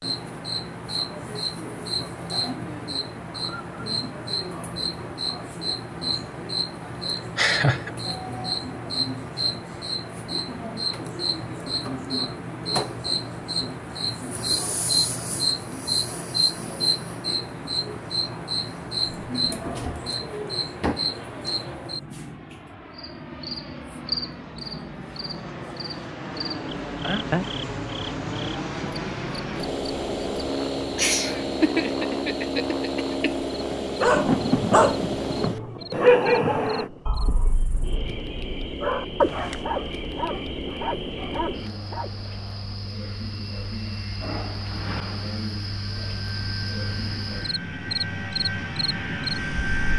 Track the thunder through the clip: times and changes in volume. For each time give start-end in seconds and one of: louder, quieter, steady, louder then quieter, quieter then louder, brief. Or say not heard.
34.0-38.1 quieter.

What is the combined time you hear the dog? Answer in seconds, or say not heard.
8 s.